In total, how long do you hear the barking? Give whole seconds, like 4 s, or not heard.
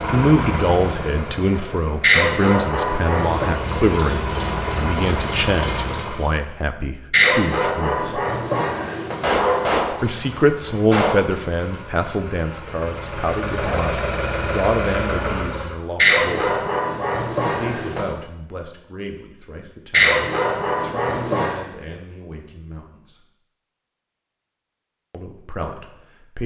8 s.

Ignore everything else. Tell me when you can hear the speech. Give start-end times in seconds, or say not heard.
0.0-8.2, 9.9-16.6, 17.4-23.2, 25.1-26.4.